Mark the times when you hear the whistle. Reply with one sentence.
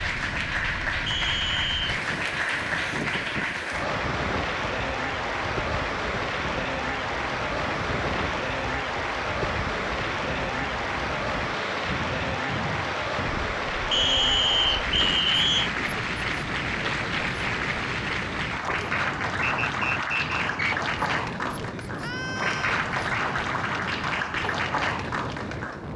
The whistle can be heard from 1.1 to 1.9 s, from 13.9 to 15.7 s and from 19.4 to 20.8 s.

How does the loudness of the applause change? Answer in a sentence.
The volume of the applause stays about the same.